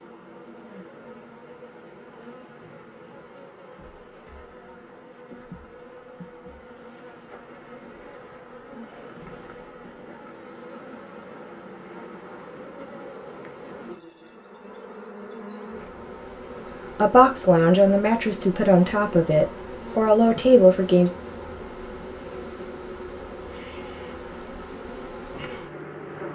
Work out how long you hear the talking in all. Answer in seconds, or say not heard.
4 s.